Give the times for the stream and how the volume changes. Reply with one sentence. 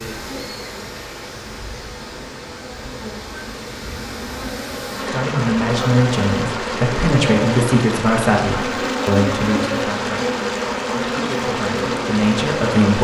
The stream can be heard from 0.0 to 13.0 s, getting louder.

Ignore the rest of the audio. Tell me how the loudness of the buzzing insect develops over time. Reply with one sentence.
The volume of the buzzing insect goes up.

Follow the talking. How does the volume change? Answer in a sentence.
The loudness of the talking goes down, then up.